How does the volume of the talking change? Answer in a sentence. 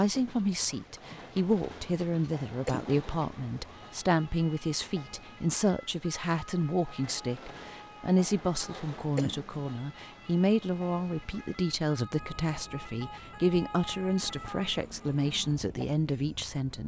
The volume of the talking stays about the same.